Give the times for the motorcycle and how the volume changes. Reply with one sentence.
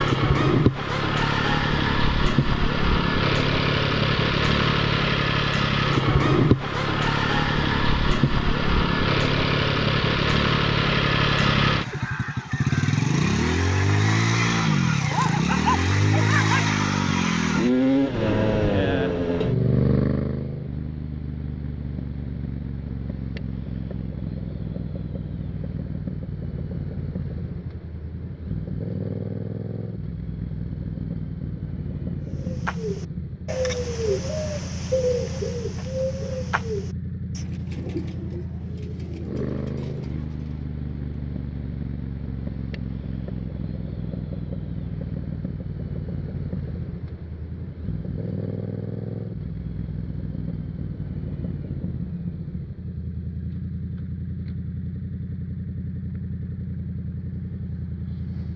The motorcycle can be heard from 0.0 to 58.5 s, getting quieter.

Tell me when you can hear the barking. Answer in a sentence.
You can hear the barking from 14.9 to 16.6 s.